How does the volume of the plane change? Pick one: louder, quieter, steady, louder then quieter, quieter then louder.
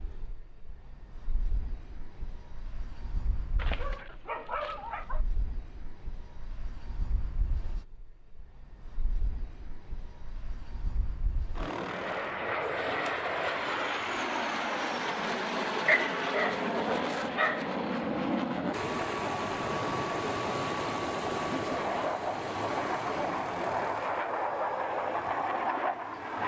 louder.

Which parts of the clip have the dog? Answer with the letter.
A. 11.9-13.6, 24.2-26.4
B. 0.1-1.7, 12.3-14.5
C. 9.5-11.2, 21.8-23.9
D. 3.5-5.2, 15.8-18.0
D.